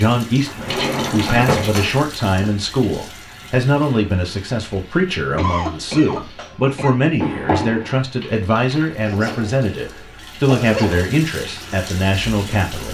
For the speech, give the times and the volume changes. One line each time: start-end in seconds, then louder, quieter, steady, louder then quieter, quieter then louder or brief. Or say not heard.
0.0-12.8 steady.